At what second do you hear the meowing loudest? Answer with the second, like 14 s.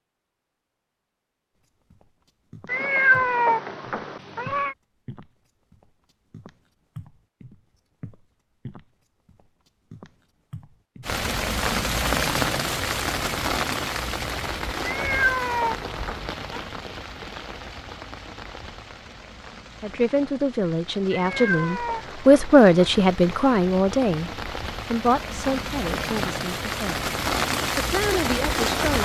3 s.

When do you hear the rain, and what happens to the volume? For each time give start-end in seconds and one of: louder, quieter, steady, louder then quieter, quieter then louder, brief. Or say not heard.
11.0-28.9 quieter then louder.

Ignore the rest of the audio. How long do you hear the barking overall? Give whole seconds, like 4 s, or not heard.
not heard.